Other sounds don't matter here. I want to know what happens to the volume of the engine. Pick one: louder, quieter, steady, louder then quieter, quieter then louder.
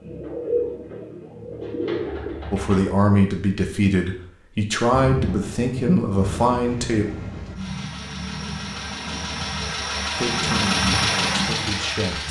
louder.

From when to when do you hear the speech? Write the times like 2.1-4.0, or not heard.
2.5-7.0, 10.2-12.2.